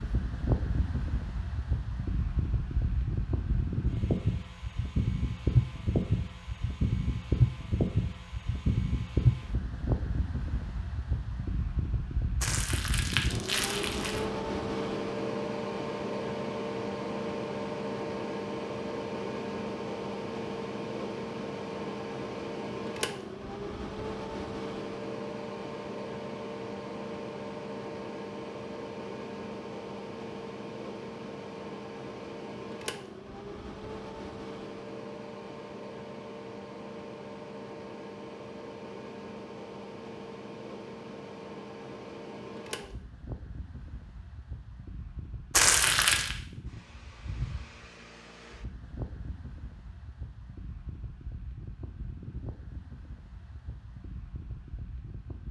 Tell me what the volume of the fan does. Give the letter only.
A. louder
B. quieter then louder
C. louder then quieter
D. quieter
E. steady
D.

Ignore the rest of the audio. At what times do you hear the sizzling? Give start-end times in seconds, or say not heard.
not heard.